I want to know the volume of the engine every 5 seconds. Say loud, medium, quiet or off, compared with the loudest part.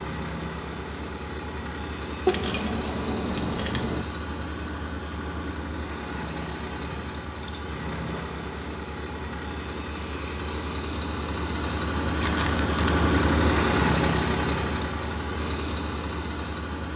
medium, medium, loud, medium.